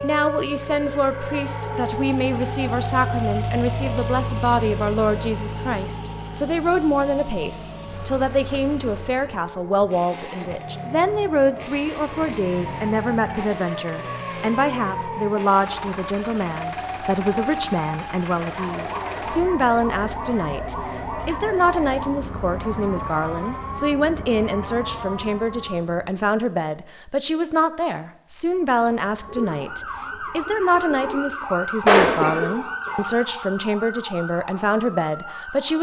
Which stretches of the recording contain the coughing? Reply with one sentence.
You can hear the coughing from 31.9 to 33.0 s.